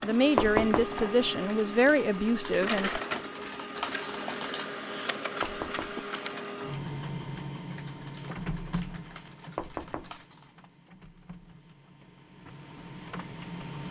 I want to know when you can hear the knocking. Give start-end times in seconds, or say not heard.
0.3-1.0, 5.4-6.0, 9.6-10.2.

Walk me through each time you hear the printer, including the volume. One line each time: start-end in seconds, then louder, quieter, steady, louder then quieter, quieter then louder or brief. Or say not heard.
0.0-13.8 quieter.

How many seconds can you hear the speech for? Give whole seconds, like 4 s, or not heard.
3 s.